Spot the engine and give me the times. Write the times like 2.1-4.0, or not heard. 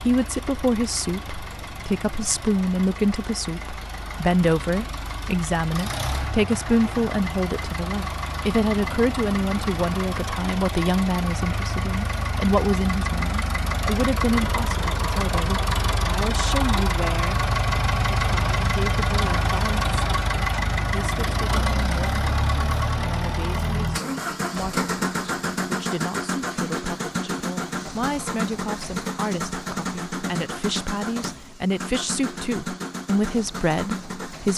0.0-34.5.